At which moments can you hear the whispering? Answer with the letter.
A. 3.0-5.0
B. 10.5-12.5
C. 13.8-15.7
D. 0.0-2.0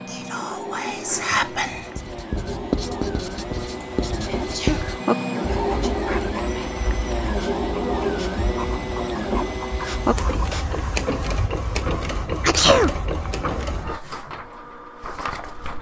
D.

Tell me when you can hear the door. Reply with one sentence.
The door can't be heard in this clip.